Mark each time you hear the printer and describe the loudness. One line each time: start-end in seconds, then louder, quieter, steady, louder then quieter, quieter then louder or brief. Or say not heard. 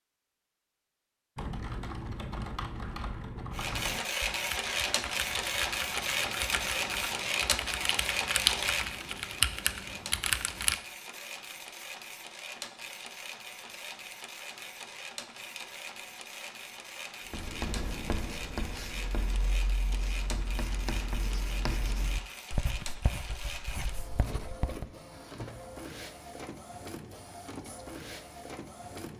3.5-29.1 quieter.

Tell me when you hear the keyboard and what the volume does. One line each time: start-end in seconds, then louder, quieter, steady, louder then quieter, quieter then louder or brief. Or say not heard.
1.4-10.8 louder.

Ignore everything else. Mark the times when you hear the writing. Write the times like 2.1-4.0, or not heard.
17.3-24.9.